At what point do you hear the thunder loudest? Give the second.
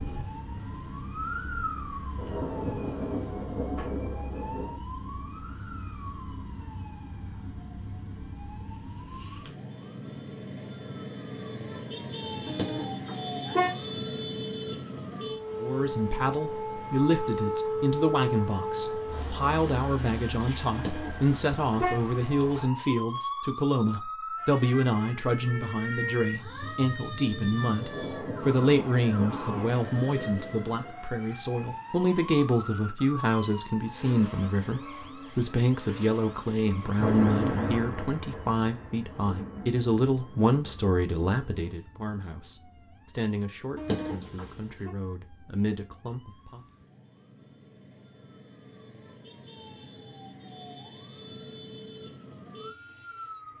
37 s.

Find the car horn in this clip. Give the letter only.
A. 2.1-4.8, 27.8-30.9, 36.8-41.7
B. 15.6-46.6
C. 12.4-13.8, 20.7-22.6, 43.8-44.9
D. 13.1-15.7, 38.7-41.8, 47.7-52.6
C.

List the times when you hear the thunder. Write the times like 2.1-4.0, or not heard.
2.1-4.8, 27.8-30.9, 36.8-41.7.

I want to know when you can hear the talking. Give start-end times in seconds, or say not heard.
15.6-46.6.